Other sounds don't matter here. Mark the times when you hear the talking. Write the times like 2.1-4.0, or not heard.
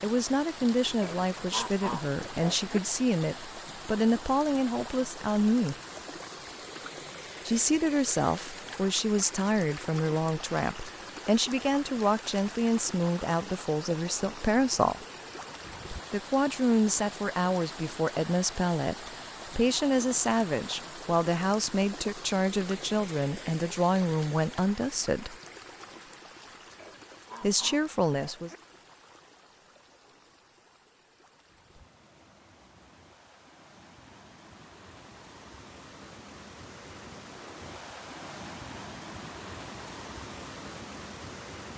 0.0-5.8, 7.5-15.1, 16.1-25.4, 27.4-28.5.